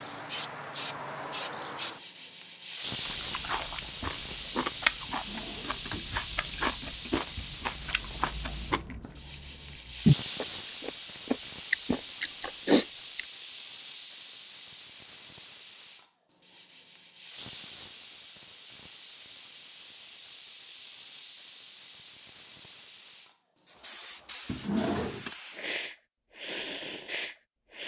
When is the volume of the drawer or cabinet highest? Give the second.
25 s.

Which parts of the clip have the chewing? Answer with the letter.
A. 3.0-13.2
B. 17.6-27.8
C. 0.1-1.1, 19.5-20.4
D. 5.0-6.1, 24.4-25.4
A.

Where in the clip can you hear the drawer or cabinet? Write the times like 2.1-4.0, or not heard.
5.0-6.1, 24.4-25.4.